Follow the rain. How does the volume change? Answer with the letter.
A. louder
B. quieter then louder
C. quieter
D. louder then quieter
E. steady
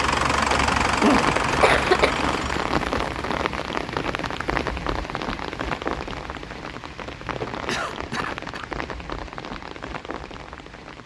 C.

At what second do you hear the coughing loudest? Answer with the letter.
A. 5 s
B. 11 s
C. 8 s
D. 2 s
D.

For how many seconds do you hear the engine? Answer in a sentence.
The engine can be heard for 3 seconds in total.